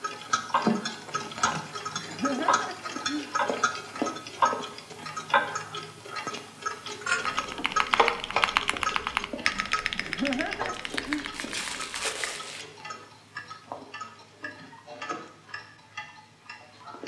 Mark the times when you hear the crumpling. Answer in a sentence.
The crumpling can be heard from 10.7 to 12.7 s.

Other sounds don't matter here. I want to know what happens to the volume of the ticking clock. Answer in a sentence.
The volume of the ticking clock goes down.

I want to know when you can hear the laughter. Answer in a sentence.
You can hear the laughter from 1.9 to 3.4 s and from 9.9 to 11.3 s.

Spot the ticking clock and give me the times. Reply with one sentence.
The ticking clock can be heard from 0.0 to 17.0 s.